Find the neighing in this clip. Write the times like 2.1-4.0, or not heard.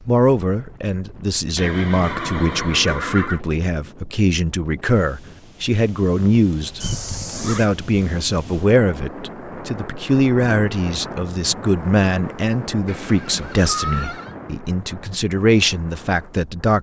1.6-3.4, 6.8-7.7, 12.8-14.3.